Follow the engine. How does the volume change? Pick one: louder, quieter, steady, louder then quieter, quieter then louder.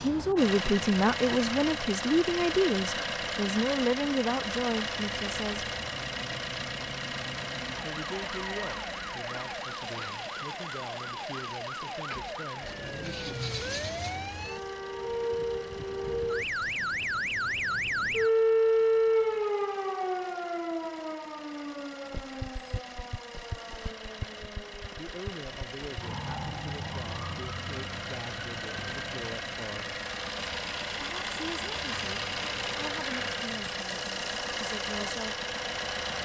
quieter then louder.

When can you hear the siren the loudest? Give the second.
19 s.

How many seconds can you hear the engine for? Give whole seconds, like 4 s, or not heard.
36 s.